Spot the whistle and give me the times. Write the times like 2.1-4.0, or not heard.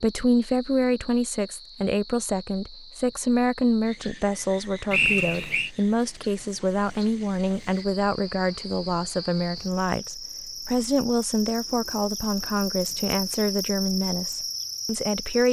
4.9-5.7.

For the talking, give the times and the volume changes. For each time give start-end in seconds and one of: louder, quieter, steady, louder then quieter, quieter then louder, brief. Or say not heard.
0.0-15.4 steady.